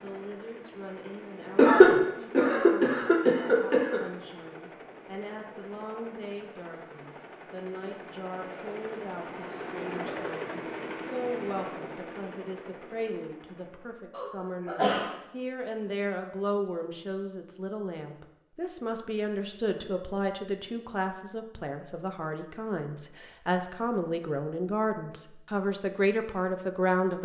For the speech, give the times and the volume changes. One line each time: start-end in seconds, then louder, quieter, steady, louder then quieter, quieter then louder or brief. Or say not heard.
0.0-27.2 louder.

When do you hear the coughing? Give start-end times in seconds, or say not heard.
1.6-4.0, 14.1-15.1.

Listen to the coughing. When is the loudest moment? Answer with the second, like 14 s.
2 s.